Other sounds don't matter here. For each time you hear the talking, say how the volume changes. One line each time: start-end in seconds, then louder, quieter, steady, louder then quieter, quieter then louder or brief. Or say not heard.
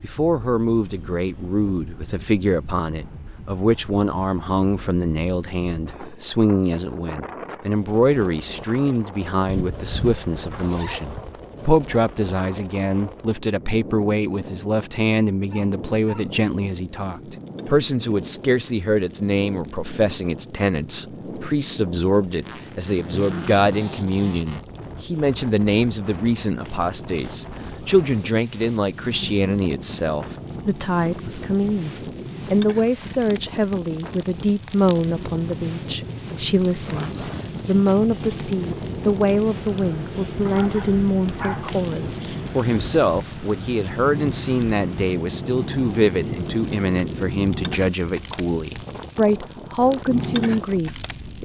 0.0-51.4 steady.